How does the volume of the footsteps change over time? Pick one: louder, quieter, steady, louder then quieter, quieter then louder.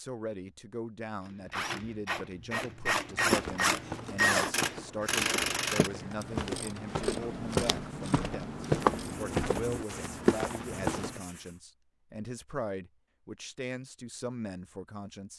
louder.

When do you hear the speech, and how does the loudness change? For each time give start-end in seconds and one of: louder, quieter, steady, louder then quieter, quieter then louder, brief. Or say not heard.
0.0-15.3 steady.